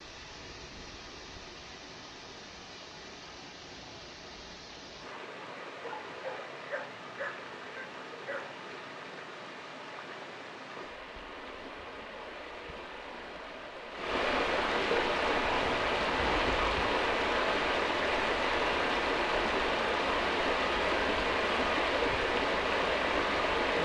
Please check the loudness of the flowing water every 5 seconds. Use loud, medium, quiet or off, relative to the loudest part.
quiet, quiet, medium, loud, loud.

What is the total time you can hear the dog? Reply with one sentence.
You can hear the dog for 4 seconds altogether.